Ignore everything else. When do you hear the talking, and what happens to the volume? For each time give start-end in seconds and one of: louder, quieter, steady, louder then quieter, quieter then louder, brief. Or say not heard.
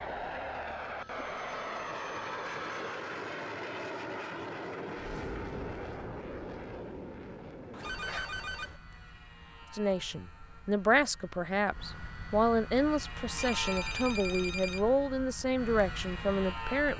9.7-16.9 steady.